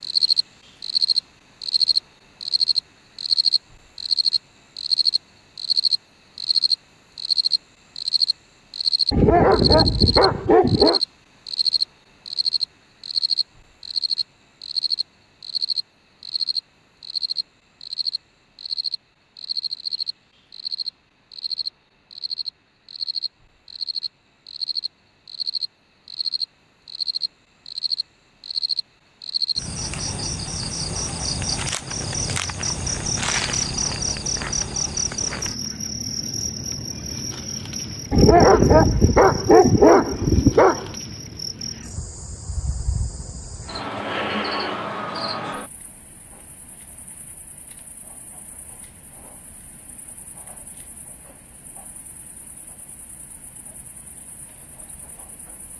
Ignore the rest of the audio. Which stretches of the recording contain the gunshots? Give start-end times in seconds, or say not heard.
not heard.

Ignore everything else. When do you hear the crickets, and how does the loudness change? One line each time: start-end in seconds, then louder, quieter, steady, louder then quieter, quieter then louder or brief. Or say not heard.
0.0-55.7 quieter.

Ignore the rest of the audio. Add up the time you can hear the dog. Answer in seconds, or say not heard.
5 s.